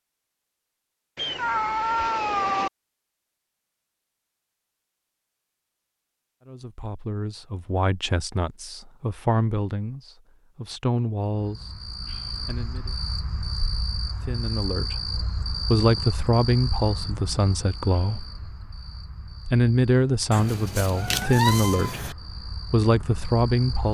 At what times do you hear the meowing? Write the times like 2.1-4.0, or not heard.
1.1-2.7, 20.3-22.1.